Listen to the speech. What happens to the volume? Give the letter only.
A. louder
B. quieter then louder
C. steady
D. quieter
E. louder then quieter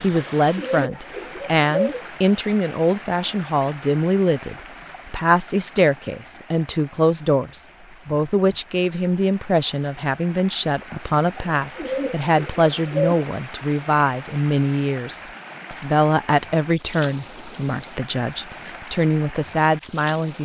C.